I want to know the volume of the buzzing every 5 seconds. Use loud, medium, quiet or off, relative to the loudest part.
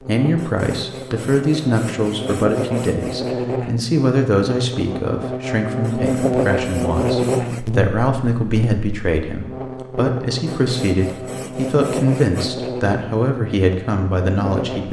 medium, loud, medium.